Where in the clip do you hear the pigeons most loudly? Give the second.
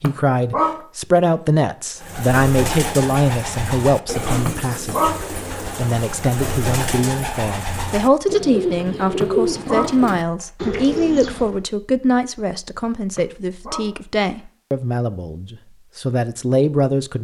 9 s.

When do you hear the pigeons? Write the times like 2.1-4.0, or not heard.
1.9-11.6.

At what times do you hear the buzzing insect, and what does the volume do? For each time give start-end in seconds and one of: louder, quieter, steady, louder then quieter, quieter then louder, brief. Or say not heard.
not heard.